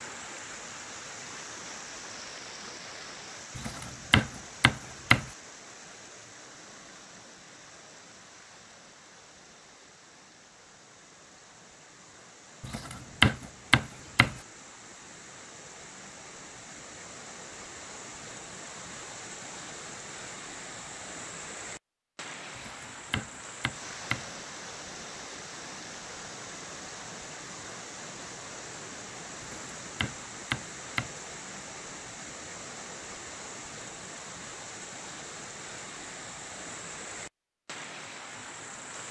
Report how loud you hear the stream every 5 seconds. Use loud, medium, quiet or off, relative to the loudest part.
loud, medium, medium, loud, loud, loud, loud, loud.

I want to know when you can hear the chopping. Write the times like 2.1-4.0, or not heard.
3.5-5.3, 12.6-14.4, 22.6-24.3, 29.4-31.2.